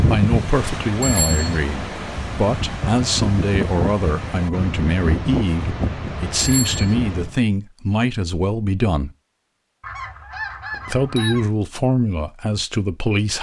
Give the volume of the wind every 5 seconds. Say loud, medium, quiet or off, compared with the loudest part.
loud, loud, off.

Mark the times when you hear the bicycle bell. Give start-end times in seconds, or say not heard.
1.0-1.6, 6.3-7.0, 10.7-11.3.